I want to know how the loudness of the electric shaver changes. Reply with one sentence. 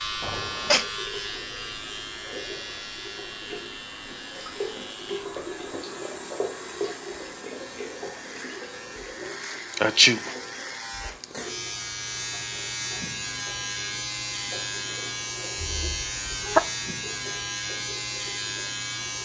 The volume of the electric shaver goes down, then up.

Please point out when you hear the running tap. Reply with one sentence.
You can hear the running tap from 0.0 to 19.2 s.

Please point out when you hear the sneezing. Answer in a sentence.
You can hear the sneezing from 0.2 to 0.8 s, from 9.8 to 10.3 s and from 15.8 to 16.6 s.